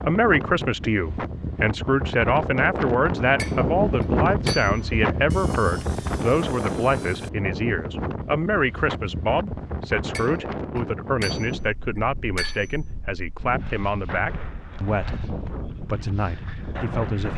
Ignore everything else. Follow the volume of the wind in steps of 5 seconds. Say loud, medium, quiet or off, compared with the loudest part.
loud, loud, medium, medium.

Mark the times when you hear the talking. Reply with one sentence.
The talking can be heard from 0.0 to 17.3 s.